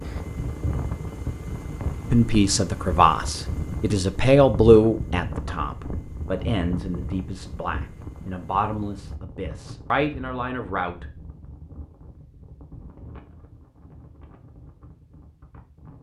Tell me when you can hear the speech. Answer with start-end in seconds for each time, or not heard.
2.1-11.1.